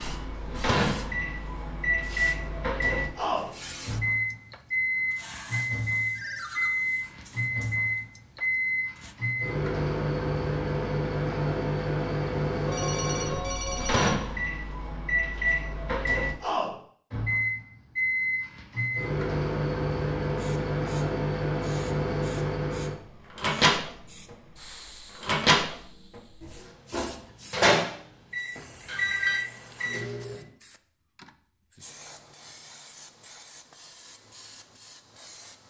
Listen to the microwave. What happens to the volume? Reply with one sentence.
The loudness of the microwave stays about the same.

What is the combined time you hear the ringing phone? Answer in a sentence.
The ringing phone can be heard for 3 seconds in total.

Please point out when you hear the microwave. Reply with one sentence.
You can hear the microwave from 0.0 to 30.4 s.